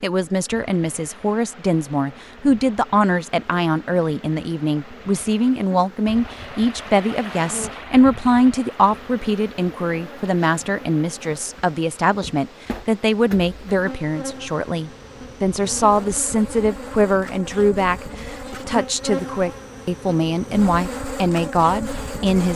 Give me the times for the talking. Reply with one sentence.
You can hear the talking from 0.0 to 22.5 s.